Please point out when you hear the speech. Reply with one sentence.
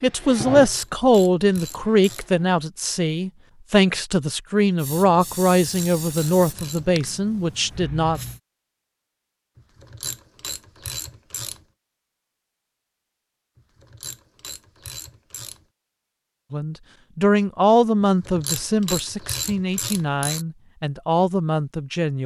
The speech can be heard from 0.0 to 8.2 s and from 16.5 to 22.2 s.